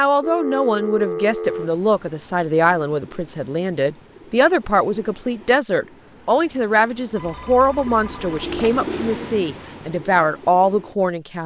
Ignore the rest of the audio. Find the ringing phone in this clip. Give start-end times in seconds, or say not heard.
0.2-1.7, 7.2-8.8.